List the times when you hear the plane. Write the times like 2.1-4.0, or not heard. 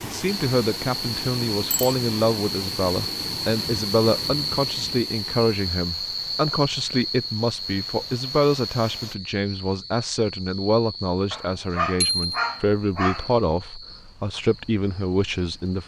not heard.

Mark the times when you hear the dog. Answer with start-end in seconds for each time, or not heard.
11.3-13.3.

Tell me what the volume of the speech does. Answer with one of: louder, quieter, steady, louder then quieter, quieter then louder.
steady.